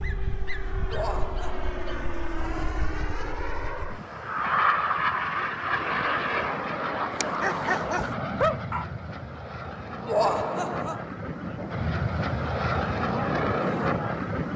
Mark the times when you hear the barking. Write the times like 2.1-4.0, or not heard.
0.0-2.0, 7.1-8.8.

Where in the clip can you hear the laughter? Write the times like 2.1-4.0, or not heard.
0.9-1.7, 10.1-11.1.